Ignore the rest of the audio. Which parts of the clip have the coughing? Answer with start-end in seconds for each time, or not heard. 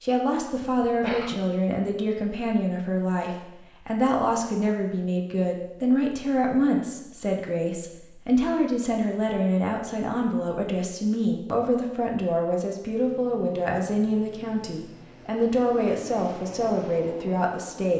0.5-1.4.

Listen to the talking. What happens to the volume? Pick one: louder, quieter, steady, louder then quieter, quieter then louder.
steady.